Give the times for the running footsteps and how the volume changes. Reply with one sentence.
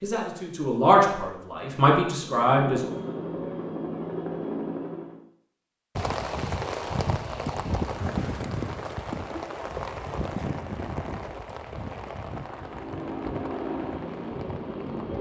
You can't hear the running footsteps here.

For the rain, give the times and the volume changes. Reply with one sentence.
The rain can be heard from 6.0 to 15.1 s, getting quieter.